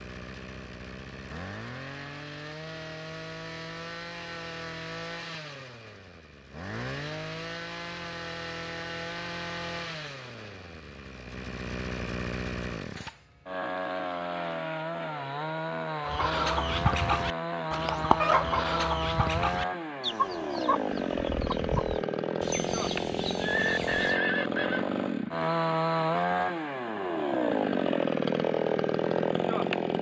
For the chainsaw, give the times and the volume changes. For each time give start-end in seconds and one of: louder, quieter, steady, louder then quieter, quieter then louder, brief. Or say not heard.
0.0-29.9 louder.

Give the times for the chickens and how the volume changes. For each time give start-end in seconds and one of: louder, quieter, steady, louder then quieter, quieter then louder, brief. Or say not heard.
16.0-24.2 quieter.